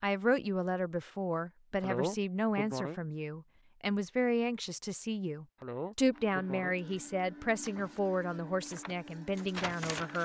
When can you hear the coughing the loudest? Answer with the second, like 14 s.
2 s.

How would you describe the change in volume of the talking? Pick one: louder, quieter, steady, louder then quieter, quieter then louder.
steady.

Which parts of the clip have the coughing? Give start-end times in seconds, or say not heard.
1.8-3.0, 5.6-6.8.